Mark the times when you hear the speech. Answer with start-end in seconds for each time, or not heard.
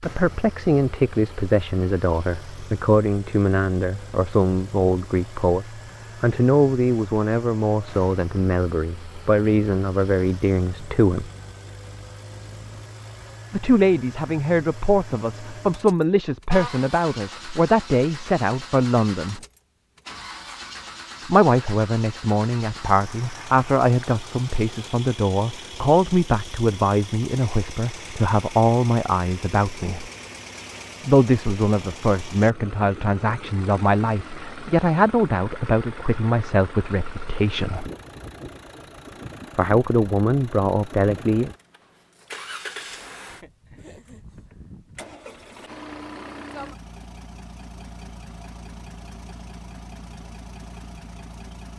0.0-11.3, 13.5-19.4, 21.2-30.1, 31.1-37.9, 39.5-41.5.